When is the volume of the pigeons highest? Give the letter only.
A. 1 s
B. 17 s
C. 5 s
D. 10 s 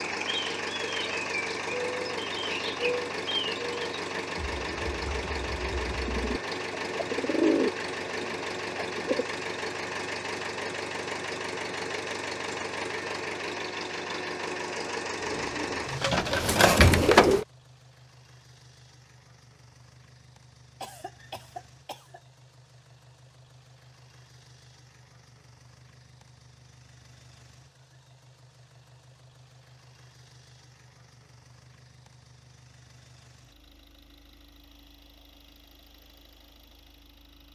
B.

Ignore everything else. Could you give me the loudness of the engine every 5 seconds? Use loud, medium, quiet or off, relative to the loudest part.
loud, loud, loud, medium, quiet, quiet, quiet, quiet.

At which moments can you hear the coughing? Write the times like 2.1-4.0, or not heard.
20.8-22.2.